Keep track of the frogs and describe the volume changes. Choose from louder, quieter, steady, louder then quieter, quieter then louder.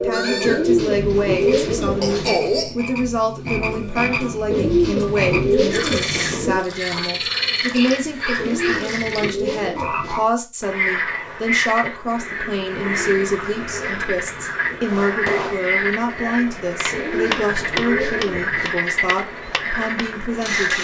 steady.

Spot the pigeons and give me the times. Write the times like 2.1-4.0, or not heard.
0.4-2.4, 4.5-6.7, 8.3-10.2, 12.9-14.9, 16.9-18.7.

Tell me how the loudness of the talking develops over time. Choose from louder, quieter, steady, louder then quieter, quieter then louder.
steady.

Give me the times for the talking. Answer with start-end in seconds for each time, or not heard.
0.0-20.7.